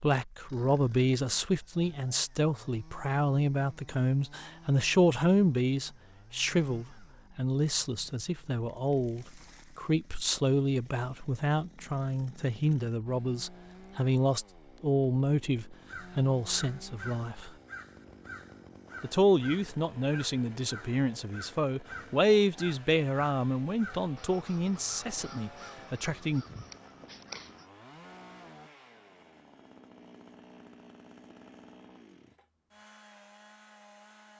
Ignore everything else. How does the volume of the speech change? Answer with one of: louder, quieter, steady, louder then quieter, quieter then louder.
steady.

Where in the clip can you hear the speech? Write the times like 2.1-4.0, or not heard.
0.0-17.5, 19.0-26.4.